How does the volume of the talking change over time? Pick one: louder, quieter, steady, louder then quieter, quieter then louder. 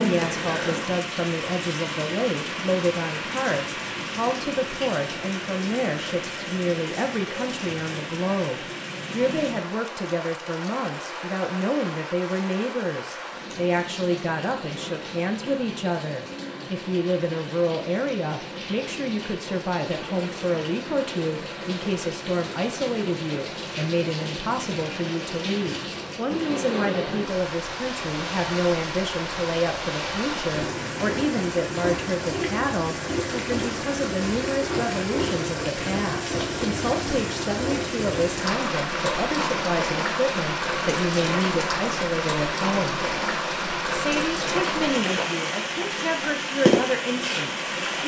steady.